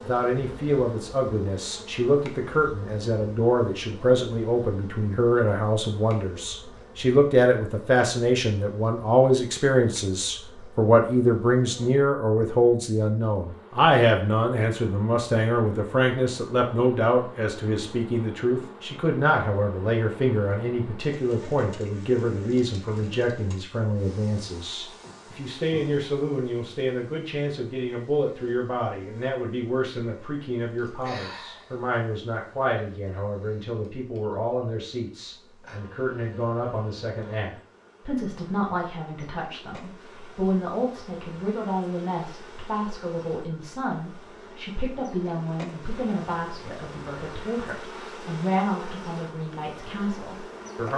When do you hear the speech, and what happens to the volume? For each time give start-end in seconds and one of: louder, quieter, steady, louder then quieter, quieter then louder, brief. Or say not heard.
0.0-50.9 quieter.